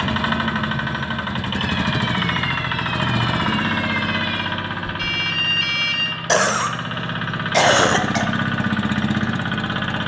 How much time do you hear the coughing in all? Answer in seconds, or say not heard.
2 s.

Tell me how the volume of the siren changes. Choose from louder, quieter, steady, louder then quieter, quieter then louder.
louder.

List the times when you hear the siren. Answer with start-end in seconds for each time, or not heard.
1.5-6.2.